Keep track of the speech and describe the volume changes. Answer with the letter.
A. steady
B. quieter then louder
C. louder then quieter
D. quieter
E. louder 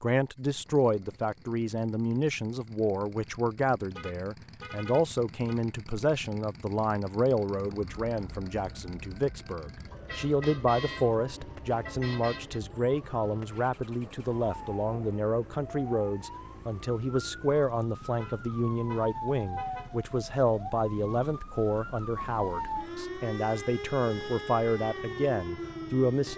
A.